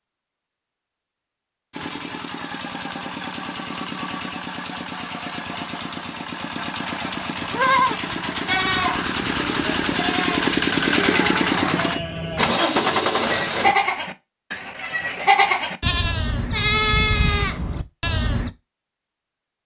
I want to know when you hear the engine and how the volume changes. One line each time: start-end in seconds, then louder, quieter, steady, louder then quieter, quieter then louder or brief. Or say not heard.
1.7-13.8 louder.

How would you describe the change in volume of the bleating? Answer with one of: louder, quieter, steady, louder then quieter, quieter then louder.
quieter then louder.